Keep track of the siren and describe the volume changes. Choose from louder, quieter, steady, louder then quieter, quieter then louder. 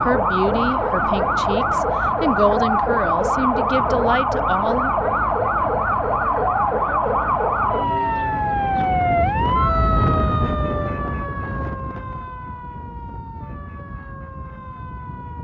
quieter.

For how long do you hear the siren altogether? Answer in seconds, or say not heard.
15 s.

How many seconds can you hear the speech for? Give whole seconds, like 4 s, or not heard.
5 s.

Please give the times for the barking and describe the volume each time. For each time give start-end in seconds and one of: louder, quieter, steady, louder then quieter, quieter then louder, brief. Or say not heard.
not heard.